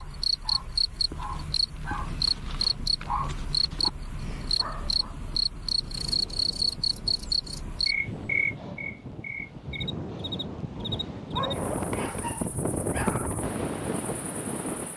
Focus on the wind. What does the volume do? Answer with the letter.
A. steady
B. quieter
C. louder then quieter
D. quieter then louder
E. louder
E.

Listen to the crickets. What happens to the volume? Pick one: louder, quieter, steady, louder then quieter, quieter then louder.
quieter.